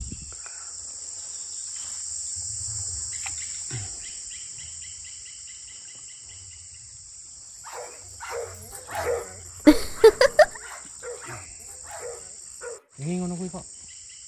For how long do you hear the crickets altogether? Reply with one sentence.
You can hear the crickets for 14 seconds altogether.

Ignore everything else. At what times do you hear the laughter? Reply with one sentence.
You can hear the laughter from 9.7 to 10.5 s.